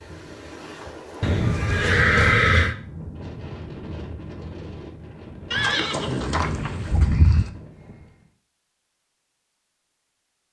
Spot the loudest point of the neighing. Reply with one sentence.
The loudest moment of the neighing is at 2 seconds.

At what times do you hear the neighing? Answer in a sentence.
The neighing can be heard from 1.2 to 2.8 s and from 5.5 to 7.5 s.